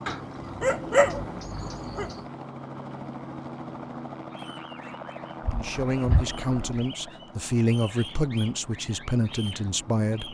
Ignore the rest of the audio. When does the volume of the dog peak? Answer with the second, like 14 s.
1 s.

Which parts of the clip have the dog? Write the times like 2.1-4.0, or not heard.
0.1-2.1, 5.4-6.9.